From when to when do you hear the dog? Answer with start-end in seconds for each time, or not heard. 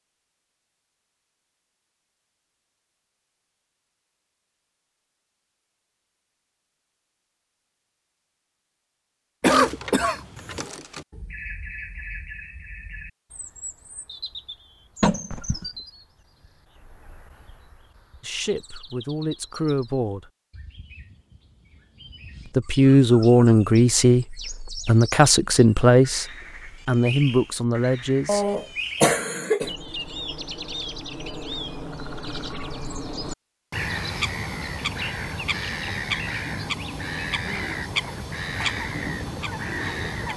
not heard.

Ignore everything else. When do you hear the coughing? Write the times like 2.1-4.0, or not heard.
9.4-10.7, 15.0-15.7, 28.2-29.7.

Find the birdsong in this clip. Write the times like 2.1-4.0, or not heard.
9.4-40.3.